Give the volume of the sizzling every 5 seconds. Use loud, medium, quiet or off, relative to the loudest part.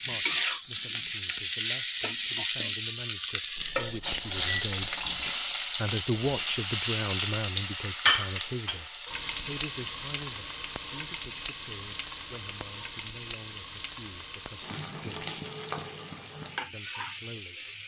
loud, loud, medium, medium.